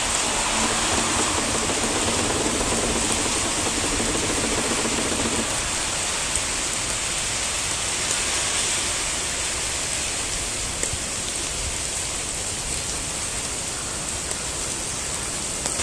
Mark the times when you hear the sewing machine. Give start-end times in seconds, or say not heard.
0.0-5.5.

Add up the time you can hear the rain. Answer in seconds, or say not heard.
16 s.